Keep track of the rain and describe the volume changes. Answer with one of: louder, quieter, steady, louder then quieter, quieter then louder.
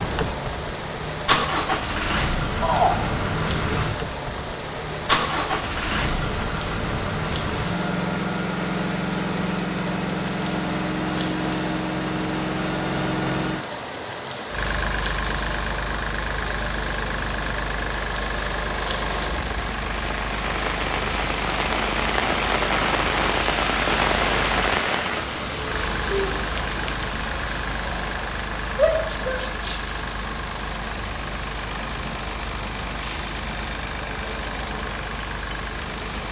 louder then quieter.